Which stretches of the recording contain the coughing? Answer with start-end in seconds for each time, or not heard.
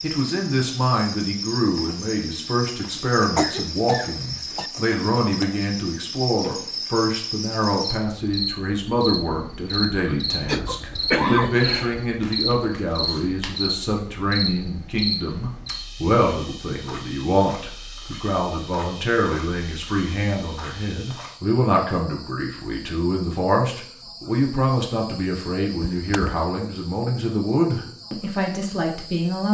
2.8-4.7, 10.4-12.1, 25.8-26.4.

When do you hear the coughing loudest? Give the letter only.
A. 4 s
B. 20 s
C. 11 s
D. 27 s
C.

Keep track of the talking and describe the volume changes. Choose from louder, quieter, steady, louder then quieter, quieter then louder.
steady.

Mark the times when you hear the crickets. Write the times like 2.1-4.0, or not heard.
0.0-29.5.